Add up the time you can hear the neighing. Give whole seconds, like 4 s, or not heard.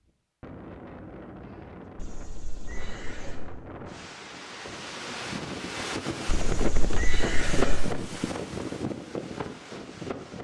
3 s.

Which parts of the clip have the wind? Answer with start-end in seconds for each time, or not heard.
0.0-10.3.